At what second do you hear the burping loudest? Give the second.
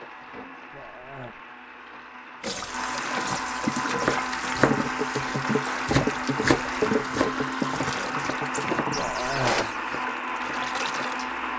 9 s.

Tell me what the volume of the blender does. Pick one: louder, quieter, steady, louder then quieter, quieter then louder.
louder.